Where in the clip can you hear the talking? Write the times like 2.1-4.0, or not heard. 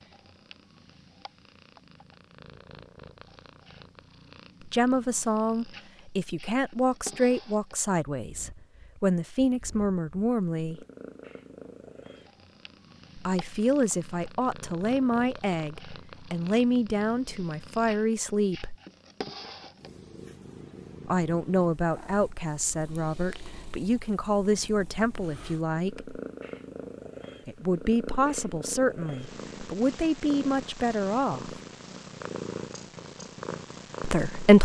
4.7-10.8, 13.2-18.8, 21.1-26.2, 27.4-31.6, 34.0-34.5.